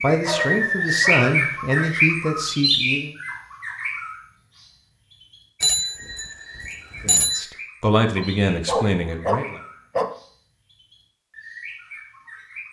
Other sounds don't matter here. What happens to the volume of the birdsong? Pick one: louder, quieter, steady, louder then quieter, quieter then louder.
quieter.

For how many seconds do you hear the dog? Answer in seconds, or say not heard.
4 s.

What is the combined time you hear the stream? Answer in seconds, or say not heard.
not heard.